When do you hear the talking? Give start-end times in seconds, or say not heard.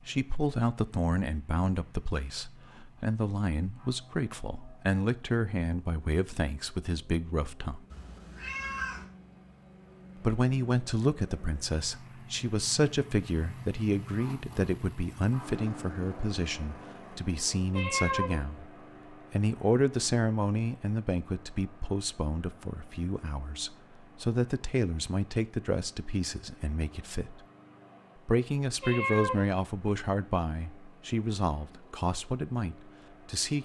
0.1-7.8, 10.2-27.4, 28.2-33.5.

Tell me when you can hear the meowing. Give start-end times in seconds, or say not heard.
7.9-9.1, 17.7-18.4, 28.8-29.5.